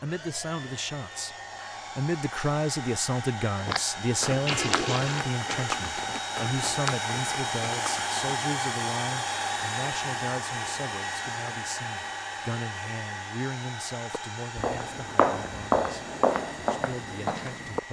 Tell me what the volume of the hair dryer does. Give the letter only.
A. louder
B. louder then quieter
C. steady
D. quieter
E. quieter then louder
B.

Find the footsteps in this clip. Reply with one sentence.
You can hear the footsteps from 3.6 to 8.3 s and from 14.1 to 17.8 s.